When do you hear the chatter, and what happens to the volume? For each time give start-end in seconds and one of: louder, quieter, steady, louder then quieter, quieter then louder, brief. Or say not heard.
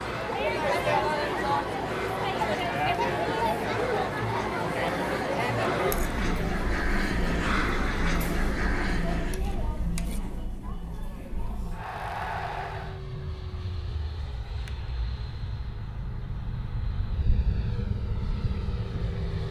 0.0-13.0 quieter.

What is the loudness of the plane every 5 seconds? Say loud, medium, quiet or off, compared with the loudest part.
medium, loud, medium, loud.